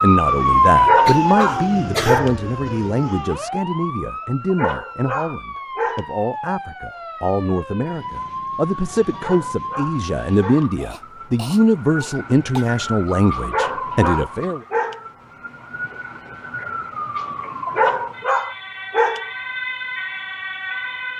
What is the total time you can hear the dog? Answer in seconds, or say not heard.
8 s.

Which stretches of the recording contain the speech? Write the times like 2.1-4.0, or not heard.
0.0-14.6.